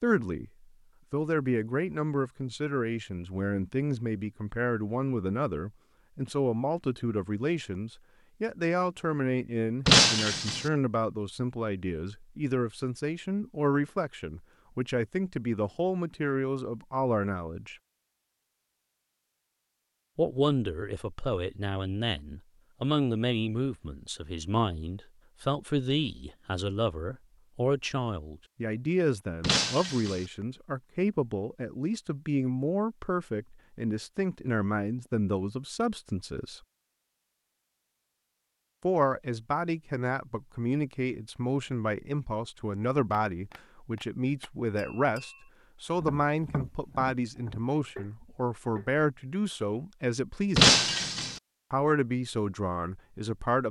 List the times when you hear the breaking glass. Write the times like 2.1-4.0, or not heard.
9.8-10.7, 29.4-30.2, 50.5-51.4.